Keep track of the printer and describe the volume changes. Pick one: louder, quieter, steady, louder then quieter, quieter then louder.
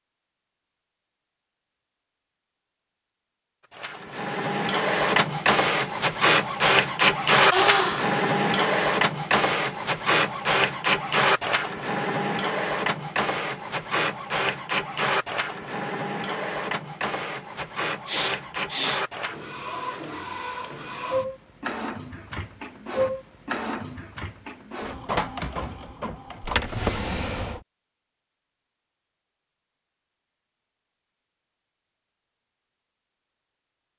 quieter.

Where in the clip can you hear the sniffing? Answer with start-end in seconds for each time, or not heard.
7.5-8.1, 17.7-19.1.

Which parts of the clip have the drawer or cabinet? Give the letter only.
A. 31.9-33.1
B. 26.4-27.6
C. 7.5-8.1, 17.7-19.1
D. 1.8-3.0
B.